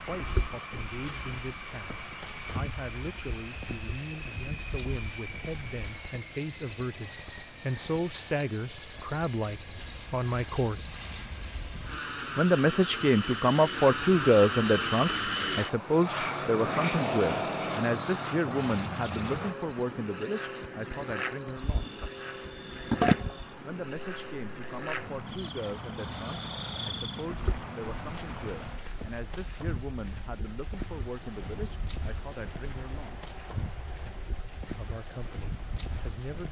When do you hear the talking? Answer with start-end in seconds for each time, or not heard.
0.0-10.9, 12.3-21.9, 23.6-33.2, 34.7-36.4.